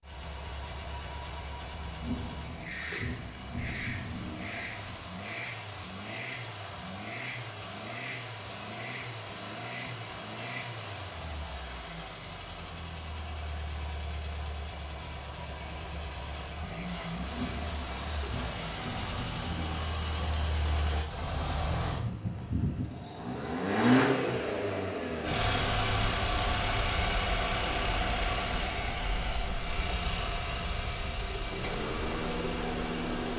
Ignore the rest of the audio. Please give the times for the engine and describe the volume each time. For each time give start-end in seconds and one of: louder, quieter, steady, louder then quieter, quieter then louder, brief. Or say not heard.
0.0-33.3 louder.